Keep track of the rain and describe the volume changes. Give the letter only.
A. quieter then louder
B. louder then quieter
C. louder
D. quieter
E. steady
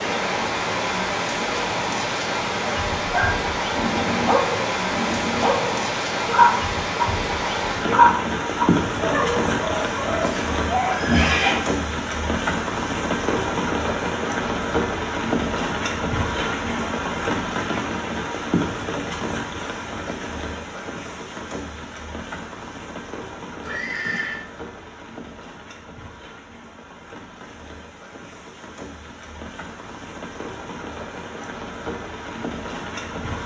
D.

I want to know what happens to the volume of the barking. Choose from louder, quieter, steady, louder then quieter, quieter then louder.
louder then quieter.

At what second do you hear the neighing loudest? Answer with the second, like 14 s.
11 s.